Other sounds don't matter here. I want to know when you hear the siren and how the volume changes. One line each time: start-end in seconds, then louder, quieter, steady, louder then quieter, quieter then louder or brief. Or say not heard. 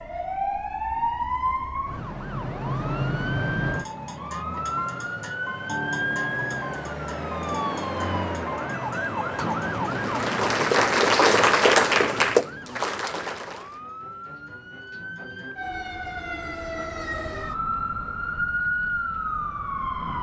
0.0-20.1 quieter then louder.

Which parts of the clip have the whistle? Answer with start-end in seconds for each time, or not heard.
not heard.